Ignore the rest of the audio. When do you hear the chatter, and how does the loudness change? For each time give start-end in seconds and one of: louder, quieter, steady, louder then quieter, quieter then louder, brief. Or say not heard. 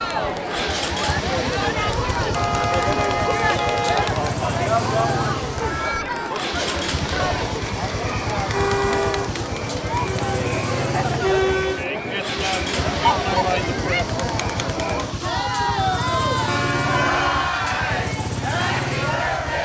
0.0-19.6 steady.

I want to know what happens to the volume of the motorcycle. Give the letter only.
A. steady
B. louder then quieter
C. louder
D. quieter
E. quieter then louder
A.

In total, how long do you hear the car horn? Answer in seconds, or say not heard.
4 s.